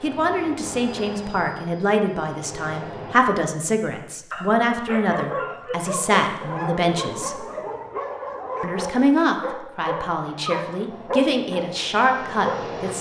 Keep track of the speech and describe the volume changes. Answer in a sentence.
The loudness of the speech stays about the same.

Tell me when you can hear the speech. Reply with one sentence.
The speech can be heard from 0.0 to 7.5 s and from 8.6 to 12.9 s.